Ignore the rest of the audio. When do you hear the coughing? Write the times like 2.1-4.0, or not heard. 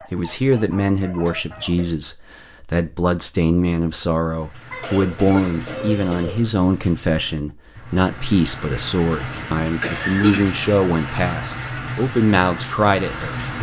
1.2-1.9, 4.7-6.5, 9.2-10.5.